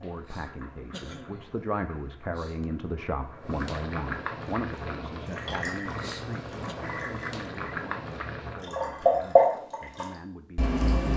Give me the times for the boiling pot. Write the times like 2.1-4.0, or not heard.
0.0-9.3.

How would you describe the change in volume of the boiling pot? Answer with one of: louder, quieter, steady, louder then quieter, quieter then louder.
louder.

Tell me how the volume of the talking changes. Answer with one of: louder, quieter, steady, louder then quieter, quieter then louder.
quieter.